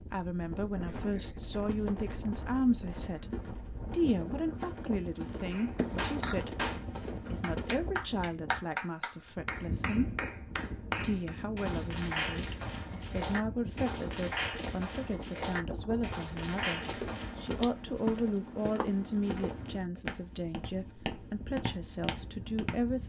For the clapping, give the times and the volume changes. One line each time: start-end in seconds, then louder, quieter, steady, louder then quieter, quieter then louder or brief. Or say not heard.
5.5-17.5 steady.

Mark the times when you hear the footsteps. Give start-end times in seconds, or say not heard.
1.6-8.0, 16.6-22.9.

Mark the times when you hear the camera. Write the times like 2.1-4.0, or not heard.
5.8-6.5.